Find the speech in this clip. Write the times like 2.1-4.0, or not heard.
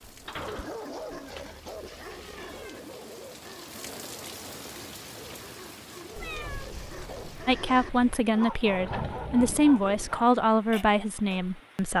7.5-11.9.